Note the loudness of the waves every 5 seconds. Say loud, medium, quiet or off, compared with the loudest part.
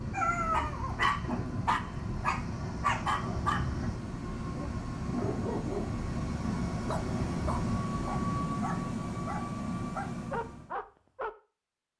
loud, loud, off.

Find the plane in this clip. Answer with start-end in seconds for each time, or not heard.
0.0-10.8.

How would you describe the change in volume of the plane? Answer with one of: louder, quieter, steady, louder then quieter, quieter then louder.
louder.